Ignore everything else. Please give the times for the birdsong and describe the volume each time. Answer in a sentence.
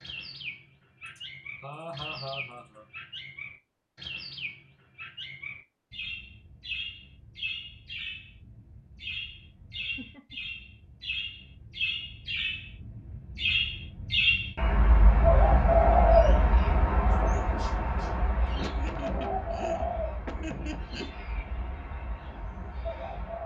You can hear the birdsong from 0.0 to 23.4 s, getting louder then quieter.